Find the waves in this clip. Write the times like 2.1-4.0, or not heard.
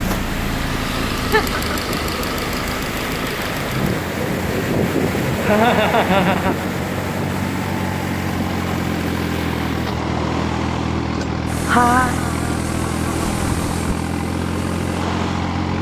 0.0-15.7.